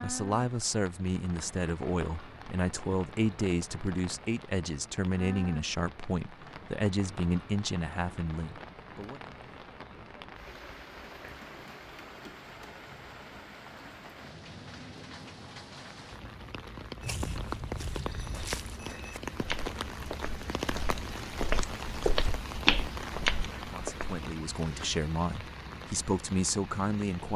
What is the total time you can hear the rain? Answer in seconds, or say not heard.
27 s.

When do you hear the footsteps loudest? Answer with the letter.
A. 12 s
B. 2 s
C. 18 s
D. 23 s
D.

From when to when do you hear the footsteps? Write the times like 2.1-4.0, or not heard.
17.0-24.2.